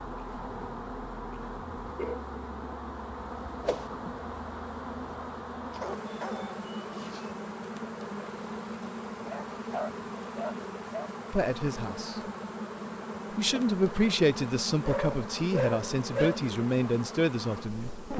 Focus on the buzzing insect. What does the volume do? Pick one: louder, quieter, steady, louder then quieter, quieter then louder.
steady.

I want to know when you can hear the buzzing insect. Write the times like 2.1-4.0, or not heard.
0.0-18.1.